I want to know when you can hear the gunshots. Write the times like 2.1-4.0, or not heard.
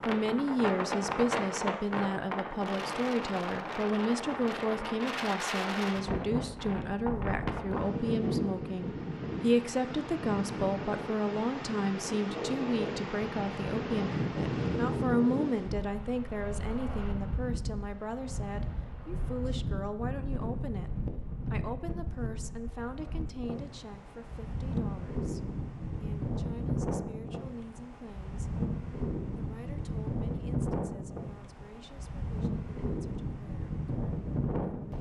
not heard.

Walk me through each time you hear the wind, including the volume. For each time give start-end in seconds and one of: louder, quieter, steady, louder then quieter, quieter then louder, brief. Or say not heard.
0.0-34.9 steady.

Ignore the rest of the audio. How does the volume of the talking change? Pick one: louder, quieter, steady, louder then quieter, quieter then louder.
quieter.